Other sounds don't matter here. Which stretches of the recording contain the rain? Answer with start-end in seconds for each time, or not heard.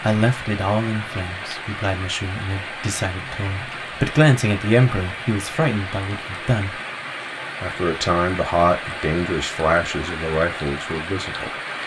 0.0-11.8.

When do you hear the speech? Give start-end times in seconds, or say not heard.
0.0-6.8, 7.6-11.5.